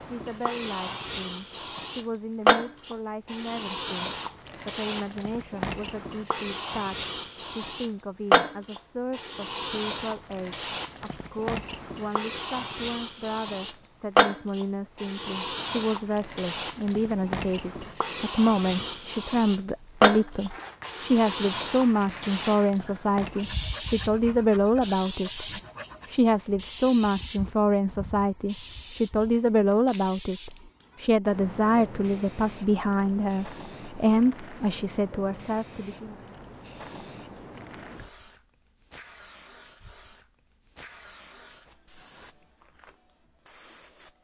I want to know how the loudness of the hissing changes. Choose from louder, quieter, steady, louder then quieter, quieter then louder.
quieter.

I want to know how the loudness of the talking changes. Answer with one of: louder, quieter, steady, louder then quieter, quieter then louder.
louder.